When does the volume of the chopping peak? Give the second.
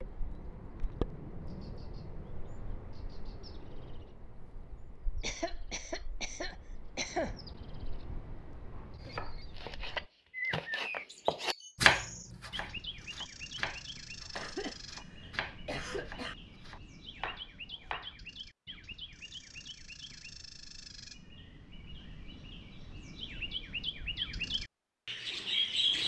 12 s.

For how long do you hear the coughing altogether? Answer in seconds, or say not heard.
4 s.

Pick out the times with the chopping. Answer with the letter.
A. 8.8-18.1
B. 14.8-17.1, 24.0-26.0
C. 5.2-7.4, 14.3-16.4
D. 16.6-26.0
A.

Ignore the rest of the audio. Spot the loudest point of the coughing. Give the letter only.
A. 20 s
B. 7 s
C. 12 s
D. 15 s
B.